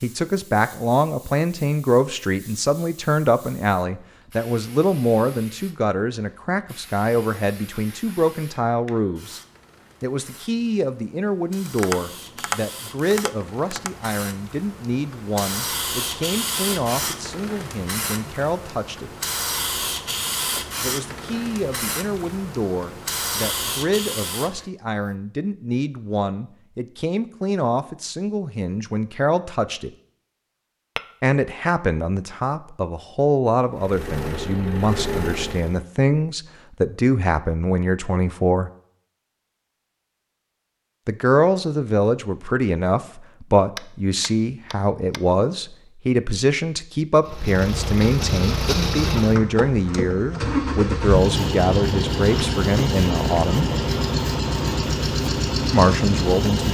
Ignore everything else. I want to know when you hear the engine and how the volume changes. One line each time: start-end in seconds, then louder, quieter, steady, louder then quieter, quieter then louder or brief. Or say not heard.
33.8-35.8 brief
47.2-56.6 steady.